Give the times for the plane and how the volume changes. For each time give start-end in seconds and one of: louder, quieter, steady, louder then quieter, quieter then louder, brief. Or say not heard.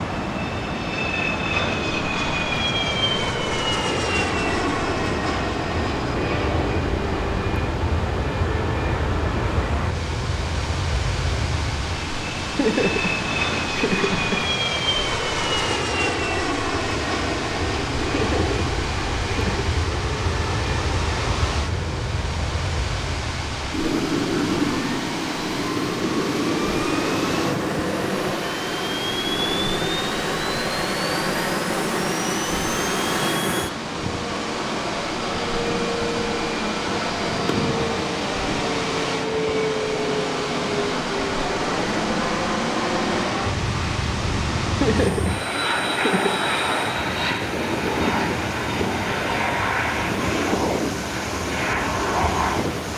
0.0-52.9 steady.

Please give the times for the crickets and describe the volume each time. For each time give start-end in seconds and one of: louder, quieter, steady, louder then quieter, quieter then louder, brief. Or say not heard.
not heard.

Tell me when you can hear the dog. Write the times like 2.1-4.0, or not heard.
not heard.